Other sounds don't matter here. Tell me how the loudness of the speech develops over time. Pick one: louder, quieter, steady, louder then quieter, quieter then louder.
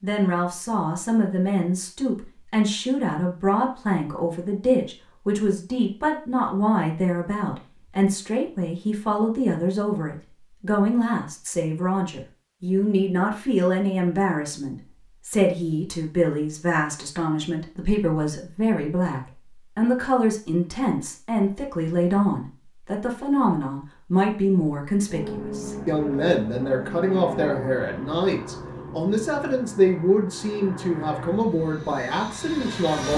steady.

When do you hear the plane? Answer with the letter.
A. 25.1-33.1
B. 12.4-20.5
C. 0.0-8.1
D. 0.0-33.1
A.